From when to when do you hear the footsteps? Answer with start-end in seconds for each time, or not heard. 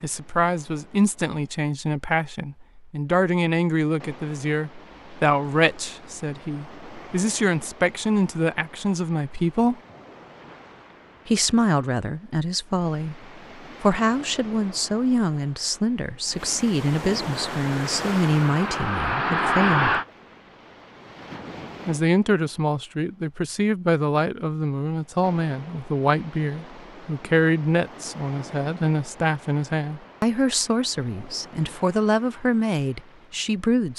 not heard.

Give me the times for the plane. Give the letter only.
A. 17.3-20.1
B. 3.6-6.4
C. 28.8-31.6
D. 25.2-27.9
A.